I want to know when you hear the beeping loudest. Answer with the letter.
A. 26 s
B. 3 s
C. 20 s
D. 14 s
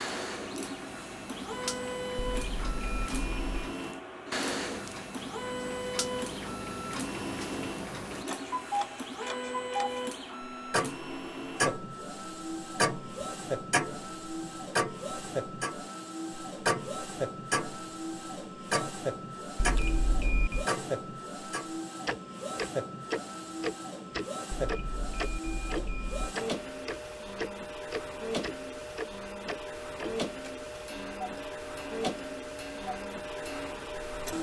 C.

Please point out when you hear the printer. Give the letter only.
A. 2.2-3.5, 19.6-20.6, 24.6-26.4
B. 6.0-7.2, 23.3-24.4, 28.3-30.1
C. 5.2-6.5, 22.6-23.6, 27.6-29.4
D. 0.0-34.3
D.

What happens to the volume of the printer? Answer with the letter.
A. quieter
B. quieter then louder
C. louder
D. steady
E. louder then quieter
D.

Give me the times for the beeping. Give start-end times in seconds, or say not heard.
2.2-3.5, 19.6-20.6, 24.6-26.4.